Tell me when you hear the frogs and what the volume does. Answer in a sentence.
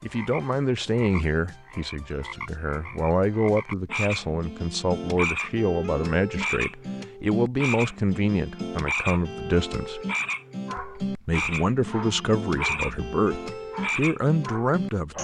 The frogs can be heard from 0.0 to 15.2 s, getting louder.